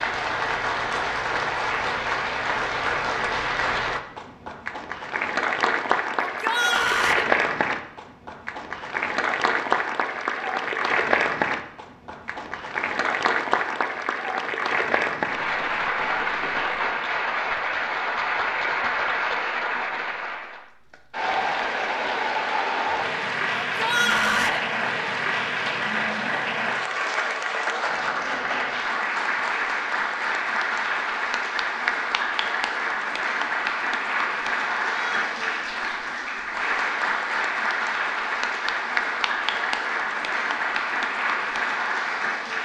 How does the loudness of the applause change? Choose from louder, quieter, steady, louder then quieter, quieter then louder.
steady.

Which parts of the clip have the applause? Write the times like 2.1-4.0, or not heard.
0.0-42.6.